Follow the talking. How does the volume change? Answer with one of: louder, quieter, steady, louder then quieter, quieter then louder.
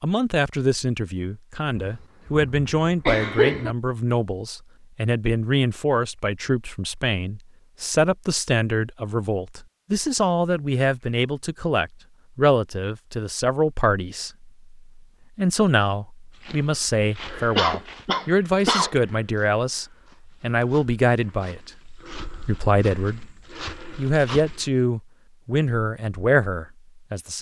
steady.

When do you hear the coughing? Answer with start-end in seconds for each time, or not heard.
1.8-3.8, 17.6-18.9.